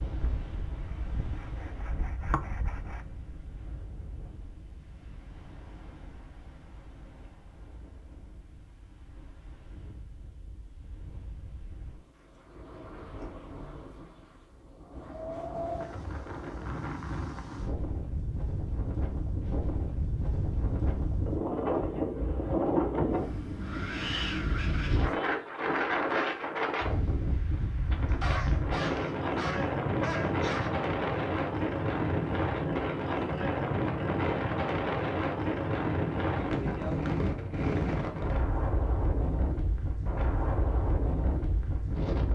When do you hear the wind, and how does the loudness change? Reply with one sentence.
You can hear the wind from 0.0 to 42.3 s, getting louder.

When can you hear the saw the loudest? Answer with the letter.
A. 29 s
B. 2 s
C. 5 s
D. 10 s
B.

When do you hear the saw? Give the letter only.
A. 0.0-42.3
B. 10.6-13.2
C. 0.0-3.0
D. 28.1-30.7
C.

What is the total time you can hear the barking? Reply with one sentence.
You can hear the barking for 3 seconds altogether.